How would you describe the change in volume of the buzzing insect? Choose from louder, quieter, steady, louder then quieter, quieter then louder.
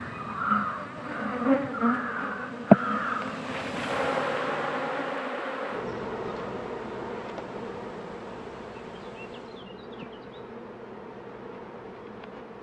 quieter.